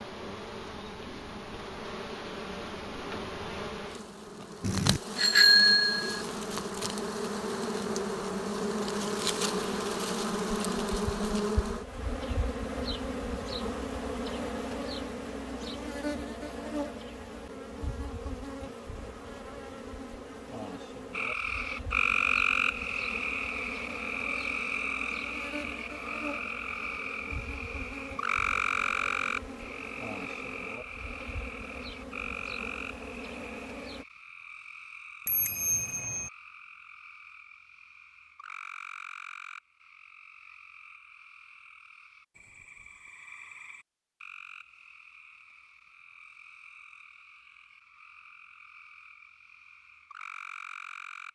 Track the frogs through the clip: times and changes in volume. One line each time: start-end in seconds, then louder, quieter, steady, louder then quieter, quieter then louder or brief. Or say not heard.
21.1-51.3 quieter.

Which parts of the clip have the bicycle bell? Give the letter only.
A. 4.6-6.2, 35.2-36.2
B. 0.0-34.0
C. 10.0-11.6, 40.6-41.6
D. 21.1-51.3
A.